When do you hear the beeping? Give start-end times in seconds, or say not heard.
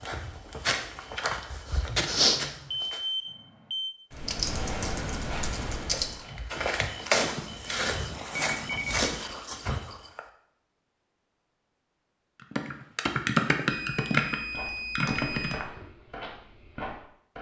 2.9-4.0, 8.3-9.2, 13.7-15.6.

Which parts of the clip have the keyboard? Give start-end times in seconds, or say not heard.
4.1-6.2, 12.5-15.6.